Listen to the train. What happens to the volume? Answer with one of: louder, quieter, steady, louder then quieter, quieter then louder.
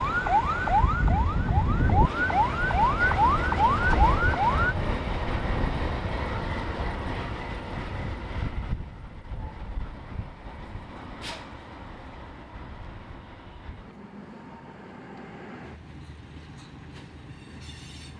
quieter.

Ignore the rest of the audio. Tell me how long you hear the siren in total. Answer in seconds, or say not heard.
5 s.